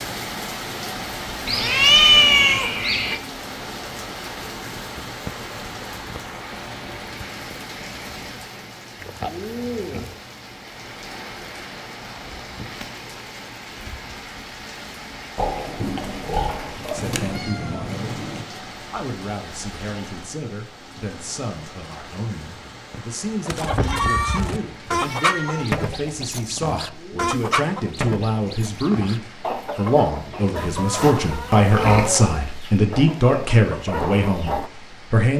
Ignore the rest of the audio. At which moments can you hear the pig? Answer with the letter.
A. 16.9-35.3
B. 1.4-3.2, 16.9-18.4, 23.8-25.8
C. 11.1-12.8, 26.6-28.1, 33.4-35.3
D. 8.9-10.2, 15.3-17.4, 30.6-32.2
D.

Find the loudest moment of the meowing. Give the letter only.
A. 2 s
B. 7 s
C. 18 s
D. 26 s
A.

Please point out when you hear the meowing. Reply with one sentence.
The meowing can be heard from 1.4 to 3.2 s, from 16.9 to 18.4 s and from 23.8 to 25.8 s.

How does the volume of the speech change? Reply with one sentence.
The volume of the speech goes up.